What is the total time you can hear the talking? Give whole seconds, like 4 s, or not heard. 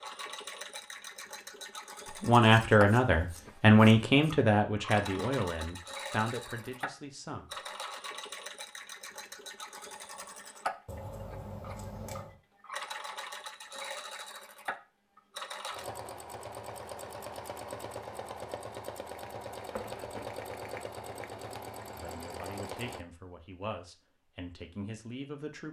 9 s.